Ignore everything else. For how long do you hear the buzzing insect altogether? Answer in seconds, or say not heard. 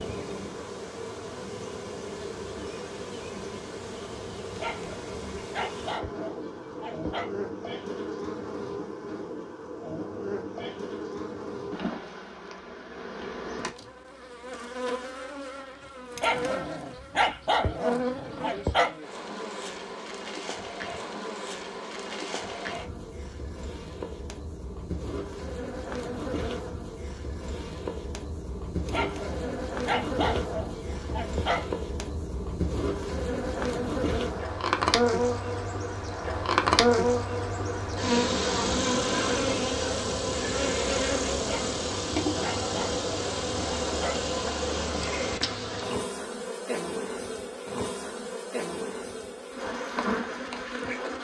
51 s.